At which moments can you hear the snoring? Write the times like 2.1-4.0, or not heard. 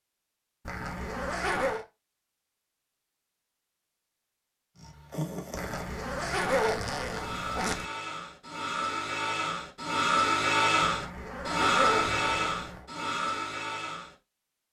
4.8-14.2.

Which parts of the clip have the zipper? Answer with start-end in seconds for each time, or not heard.
0.7-1.9, 5.5-7.8, 10.8-12.8.